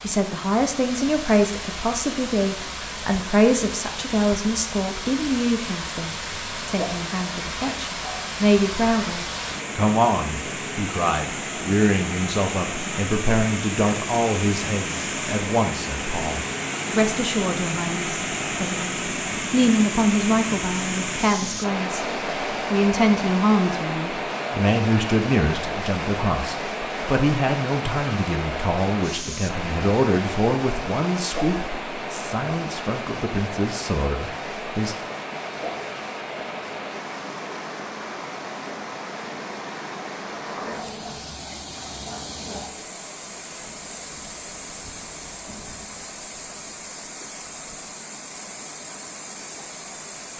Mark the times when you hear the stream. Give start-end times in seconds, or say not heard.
0.0-50.3.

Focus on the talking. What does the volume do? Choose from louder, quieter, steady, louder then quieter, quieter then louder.
steady.